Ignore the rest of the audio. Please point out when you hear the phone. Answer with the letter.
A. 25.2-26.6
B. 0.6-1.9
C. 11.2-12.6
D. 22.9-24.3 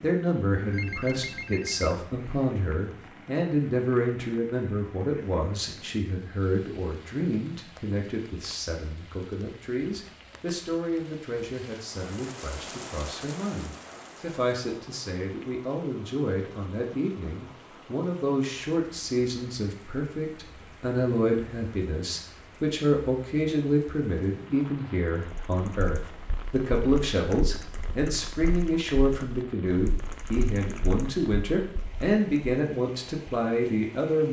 B.